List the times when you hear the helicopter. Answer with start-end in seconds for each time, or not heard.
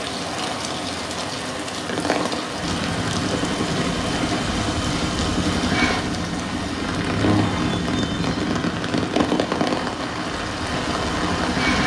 2.6-11.8.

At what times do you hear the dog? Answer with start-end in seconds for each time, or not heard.
not heard.